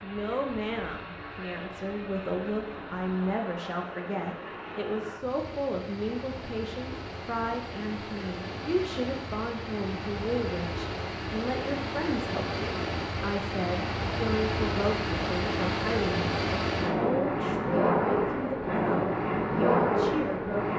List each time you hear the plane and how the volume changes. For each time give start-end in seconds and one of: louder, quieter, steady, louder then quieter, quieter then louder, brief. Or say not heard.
0.0-20.7 louder.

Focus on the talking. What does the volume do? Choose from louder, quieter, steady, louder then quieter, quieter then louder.
steady.